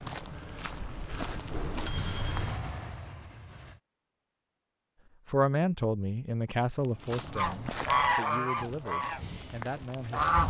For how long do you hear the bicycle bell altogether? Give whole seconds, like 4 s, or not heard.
2 s.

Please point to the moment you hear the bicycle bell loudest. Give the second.
2 s.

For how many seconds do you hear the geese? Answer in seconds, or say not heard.
3 s.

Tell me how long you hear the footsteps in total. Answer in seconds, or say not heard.
6 s.